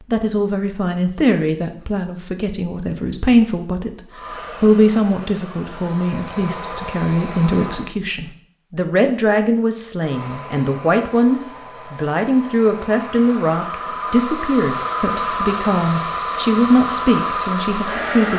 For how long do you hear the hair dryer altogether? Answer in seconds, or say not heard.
12 s.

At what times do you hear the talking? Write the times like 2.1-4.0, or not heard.
0.1-4.0, 4.6-18.3.